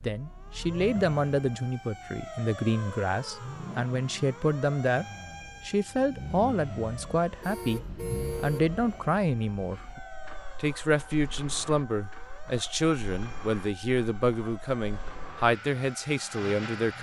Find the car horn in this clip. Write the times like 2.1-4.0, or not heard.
7.4-8.7.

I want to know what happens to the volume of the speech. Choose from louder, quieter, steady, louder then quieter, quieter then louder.
steady.